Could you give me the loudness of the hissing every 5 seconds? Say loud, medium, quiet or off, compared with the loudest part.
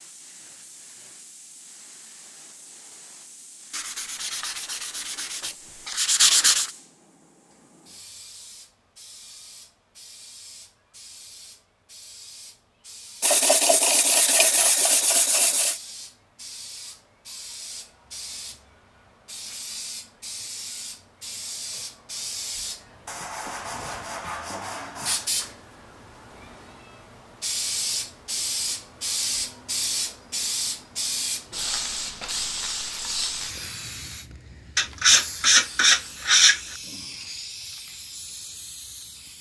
quiet, quiet, quiet, medium, medium, loud, loud, medium.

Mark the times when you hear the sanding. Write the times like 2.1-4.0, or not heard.
3.7-6.7, 13.2-15.8, 23.1-25.3, 34.8-36.6.